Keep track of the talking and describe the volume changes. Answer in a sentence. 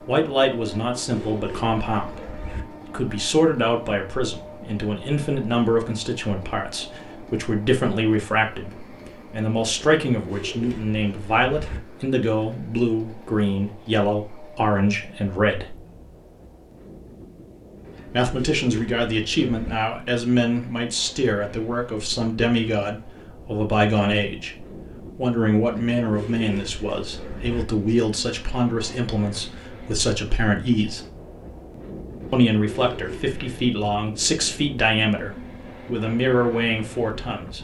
The volume of the talking stays about the same.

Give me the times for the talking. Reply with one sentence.
The talking can be heard from 0.1 to 15.8 s, from 18.1 to 31.0 s and from 32.3 to 37.5 s.